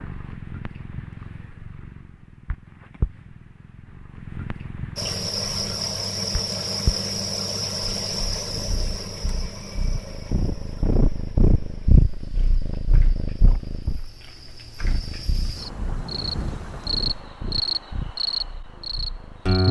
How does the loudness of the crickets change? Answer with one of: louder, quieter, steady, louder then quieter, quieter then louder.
quieter then louder.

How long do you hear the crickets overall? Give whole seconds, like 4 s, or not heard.
15 s.